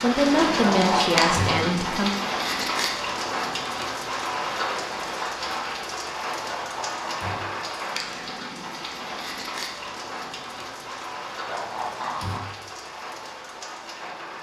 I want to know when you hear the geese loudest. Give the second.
1 s.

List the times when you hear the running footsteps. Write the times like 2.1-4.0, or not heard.
not heard.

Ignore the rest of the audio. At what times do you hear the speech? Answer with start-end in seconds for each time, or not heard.
0.0-2.1.